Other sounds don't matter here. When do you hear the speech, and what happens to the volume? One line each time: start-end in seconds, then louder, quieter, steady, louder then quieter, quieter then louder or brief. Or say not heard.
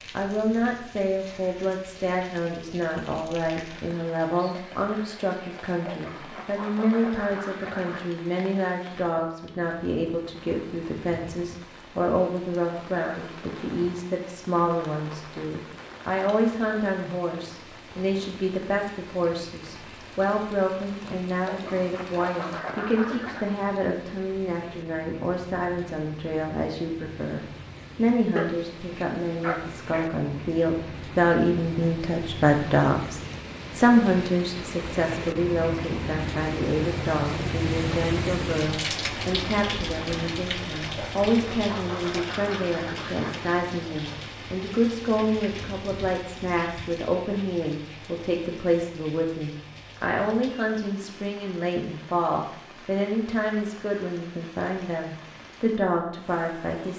0.1-56.9 steady.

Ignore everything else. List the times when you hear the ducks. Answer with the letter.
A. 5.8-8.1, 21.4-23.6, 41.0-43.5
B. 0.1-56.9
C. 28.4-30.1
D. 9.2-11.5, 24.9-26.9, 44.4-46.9
A.